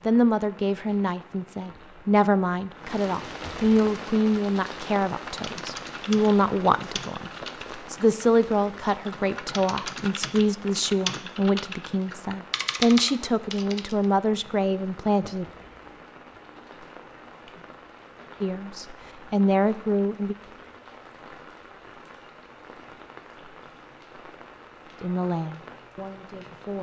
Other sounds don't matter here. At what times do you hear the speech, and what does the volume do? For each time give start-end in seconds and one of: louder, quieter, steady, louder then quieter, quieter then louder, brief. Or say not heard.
0.1-15.4 steady
18.4-20.4 brief
25.0-26.7 brief.